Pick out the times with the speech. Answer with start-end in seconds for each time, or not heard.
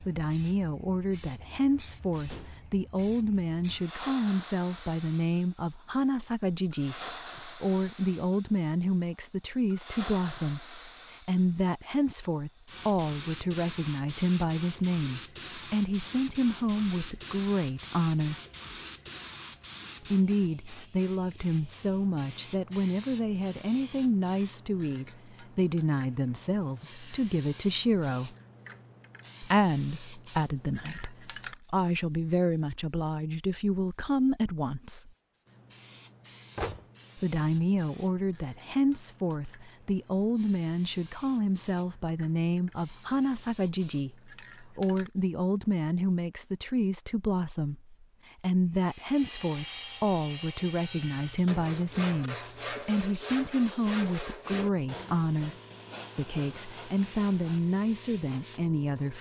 0.0-18.4, 20.1-28.4, 29.4-35.1, 37.1-55.5, 56.1-59.1.